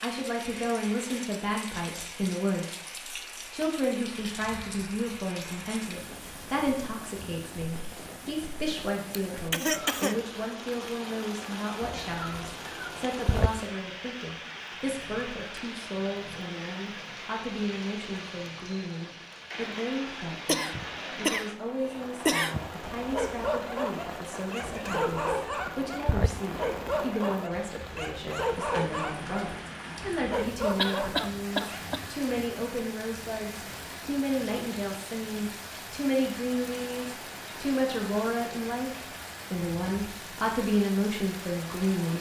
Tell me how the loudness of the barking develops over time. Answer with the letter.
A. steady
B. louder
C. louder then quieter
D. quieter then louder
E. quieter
A.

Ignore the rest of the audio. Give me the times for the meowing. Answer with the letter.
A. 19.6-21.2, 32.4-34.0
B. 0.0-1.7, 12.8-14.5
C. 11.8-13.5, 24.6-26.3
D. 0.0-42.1
C.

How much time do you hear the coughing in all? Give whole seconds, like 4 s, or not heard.
5 s.